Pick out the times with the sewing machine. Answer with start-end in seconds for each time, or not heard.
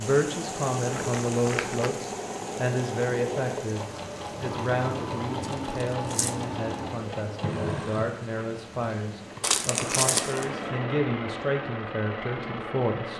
0.2-13.1.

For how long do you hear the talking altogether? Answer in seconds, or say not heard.
13 s.